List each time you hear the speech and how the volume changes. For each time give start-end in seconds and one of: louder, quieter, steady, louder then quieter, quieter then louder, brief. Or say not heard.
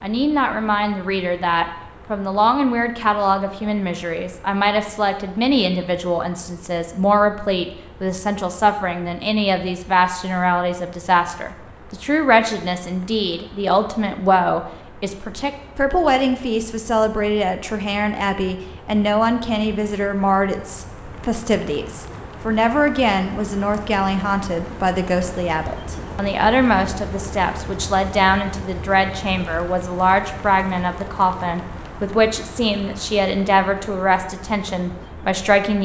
0.0-35.8 steady.